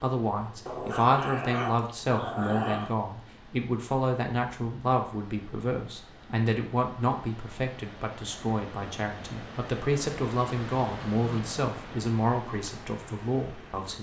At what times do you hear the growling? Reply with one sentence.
You can hear the growling from 0.7 to 2.9 s and from 11.1 to 11.6 s.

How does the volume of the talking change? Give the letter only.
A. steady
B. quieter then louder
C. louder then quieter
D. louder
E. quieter
A.